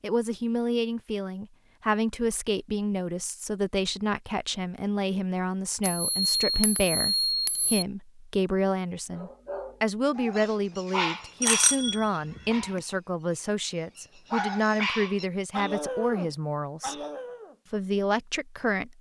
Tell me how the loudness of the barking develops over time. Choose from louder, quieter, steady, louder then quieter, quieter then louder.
quieter then louder.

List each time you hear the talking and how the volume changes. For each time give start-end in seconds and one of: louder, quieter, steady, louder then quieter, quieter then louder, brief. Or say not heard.
0.0-16.9 steady
17.7-18.9 brief.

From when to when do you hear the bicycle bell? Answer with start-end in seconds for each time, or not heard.
5.8-7.8, 11.4-12.8.